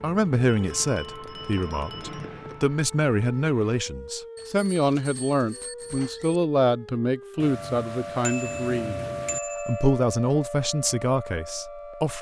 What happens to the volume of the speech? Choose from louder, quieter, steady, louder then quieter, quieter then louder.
steady.